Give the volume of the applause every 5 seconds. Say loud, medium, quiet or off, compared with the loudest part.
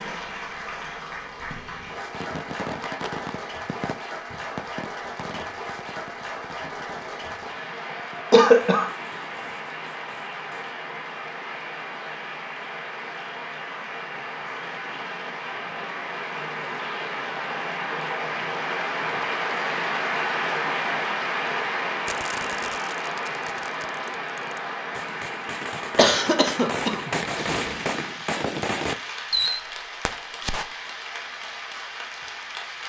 medium, medium, medium, loud, loud, medium, medium.